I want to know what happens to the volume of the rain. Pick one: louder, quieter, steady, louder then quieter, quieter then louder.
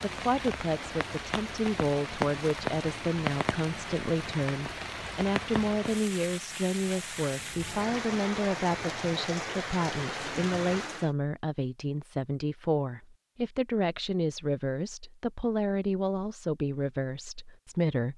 steady.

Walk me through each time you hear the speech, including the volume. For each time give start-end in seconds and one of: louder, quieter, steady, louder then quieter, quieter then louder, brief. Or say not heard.
0.0-18.1 steady.